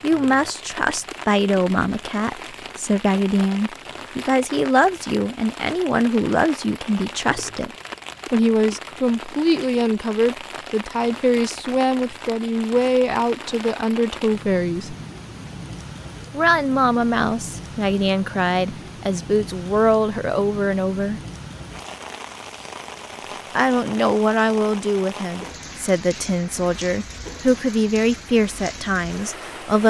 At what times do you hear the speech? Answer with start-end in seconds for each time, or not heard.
0.0-7.7, 8.3-14.9, 16.3-21.2, 23.6-29.8.